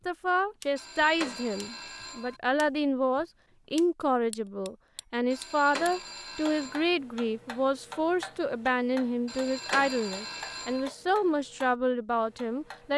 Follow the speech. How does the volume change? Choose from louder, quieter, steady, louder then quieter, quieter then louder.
steady.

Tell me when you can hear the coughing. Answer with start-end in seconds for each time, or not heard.
not heard.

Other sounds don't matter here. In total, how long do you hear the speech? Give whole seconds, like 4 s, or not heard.
13 s.